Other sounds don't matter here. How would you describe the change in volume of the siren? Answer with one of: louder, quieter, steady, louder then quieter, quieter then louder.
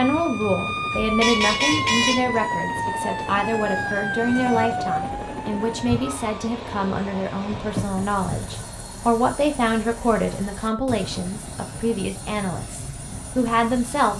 steady.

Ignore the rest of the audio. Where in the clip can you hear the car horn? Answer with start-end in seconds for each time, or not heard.
1.2-2.2, 7.5-8.7.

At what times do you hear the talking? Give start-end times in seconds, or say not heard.
0.0-14.1.